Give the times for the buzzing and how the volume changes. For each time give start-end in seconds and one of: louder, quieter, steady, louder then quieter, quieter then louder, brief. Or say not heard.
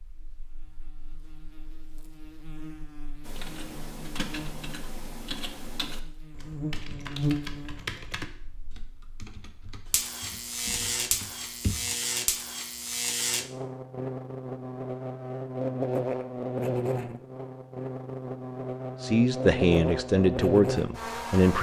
0.0-21.5 louder.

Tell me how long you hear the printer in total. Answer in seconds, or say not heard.
not heard.